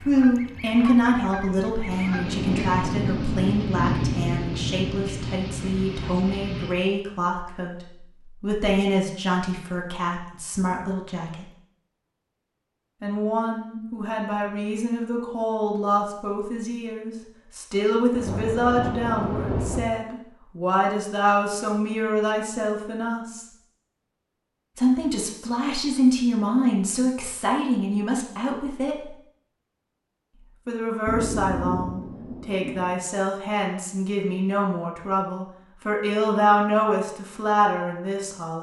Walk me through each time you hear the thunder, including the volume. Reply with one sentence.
You can hear the thunder from 1.9 to 6.8 s, getting quieter; briefly from 18.1 to 19.9 s; and briefly from 31.1 to 33.0 s.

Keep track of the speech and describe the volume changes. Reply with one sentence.
The volume of the speech stays about the same.